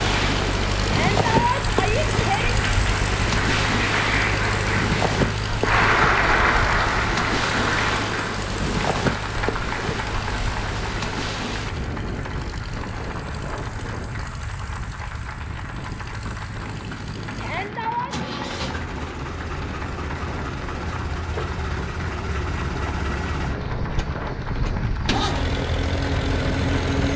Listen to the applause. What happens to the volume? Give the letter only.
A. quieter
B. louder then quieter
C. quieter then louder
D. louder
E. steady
A.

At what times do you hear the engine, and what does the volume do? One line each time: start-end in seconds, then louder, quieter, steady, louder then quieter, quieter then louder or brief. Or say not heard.
0.0-27.1 quieter then louder.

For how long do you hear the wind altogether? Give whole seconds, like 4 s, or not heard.
27 s.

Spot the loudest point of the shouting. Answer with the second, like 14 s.
1 s.